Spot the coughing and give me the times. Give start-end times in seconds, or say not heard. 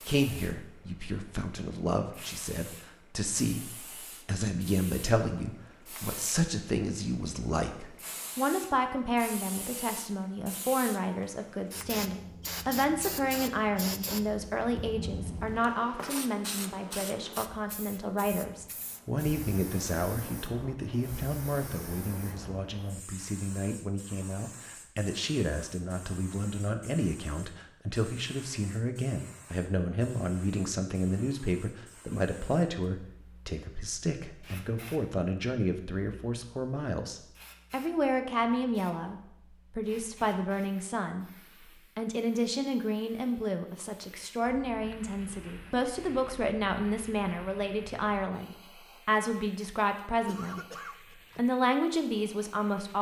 50.2-51.4.